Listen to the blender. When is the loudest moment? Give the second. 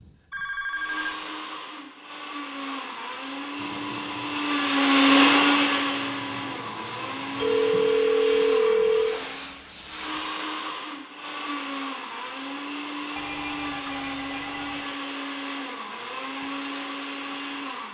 5 s.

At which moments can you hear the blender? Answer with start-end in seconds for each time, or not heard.
0.0-17.8.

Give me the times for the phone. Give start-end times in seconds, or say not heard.
0.3-1.1, 7.3-9.2, 13.2-14.9.